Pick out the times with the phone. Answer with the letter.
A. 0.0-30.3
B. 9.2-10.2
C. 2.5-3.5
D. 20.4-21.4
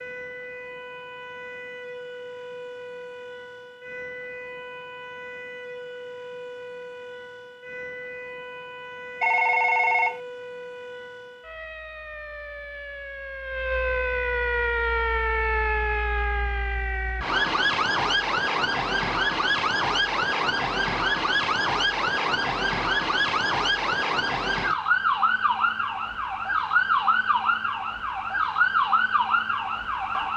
B.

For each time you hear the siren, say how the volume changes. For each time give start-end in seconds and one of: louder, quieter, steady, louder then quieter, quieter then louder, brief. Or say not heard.
0.0-30.3 louder.